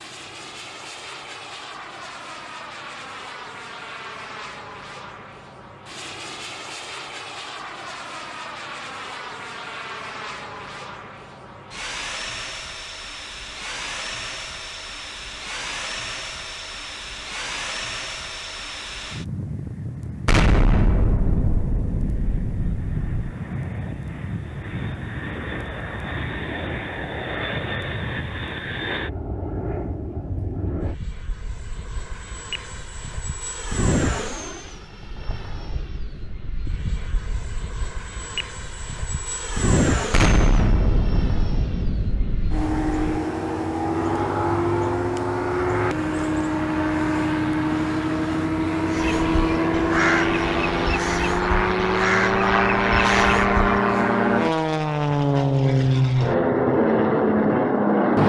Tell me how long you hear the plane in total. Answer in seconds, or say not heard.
58 s.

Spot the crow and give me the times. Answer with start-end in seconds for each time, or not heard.
48.9-54.2.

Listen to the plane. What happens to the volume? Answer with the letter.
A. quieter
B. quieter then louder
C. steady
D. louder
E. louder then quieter
D.